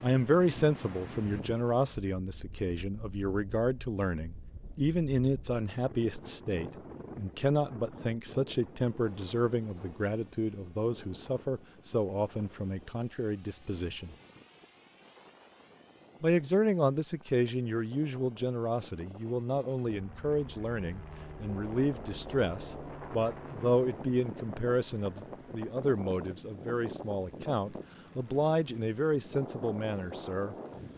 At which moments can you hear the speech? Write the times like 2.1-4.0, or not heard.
0.0-14.2, 16.2-30.6.